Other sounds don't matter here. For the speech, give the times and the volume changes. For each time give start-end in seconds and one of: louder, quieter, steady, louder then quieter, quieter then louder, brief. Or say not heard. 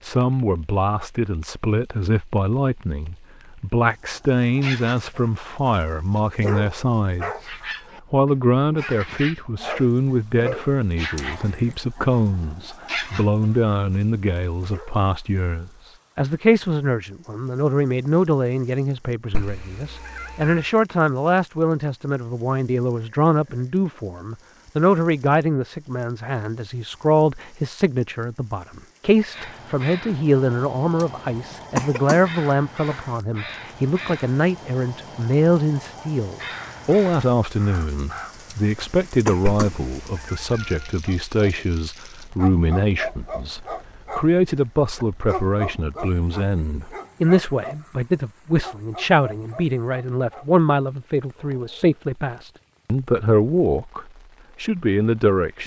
0.0-55.6 steady.